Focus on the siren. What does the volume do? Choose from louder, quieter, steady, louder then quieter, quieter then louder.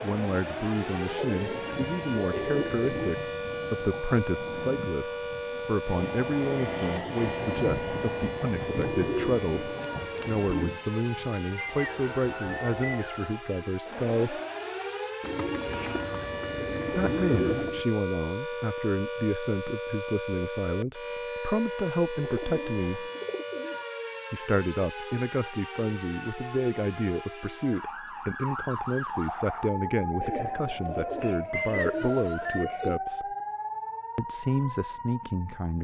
steady.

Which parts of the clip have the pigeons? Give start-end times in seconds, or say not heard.
1.2-3.0, 8.7-10.4, 15.2-17.9, 22.1-23.9, 30.2-33.0.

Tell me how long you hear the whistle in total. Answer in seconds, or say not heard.
3 s.